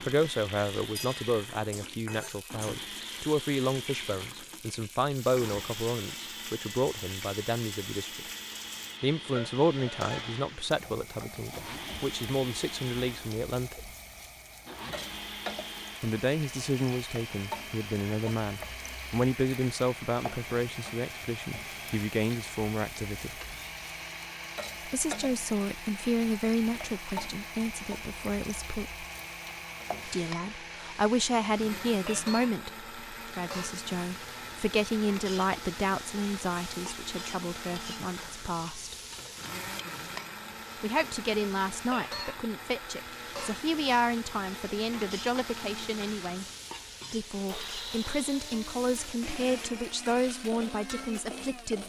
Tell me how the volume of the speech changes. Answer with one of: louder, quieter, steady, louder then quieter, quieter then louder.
steady.